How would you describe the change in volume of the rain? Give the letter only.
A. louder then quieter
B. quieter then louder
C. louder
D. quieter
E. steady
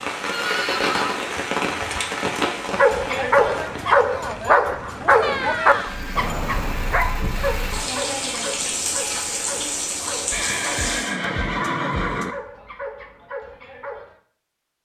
B.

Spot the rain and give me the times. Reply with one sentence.
The rain can be heard from 0.0 to 11.2 s.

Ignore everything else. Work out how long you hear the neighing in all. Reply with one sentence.
The neighing can be heard for 4 seconds in total.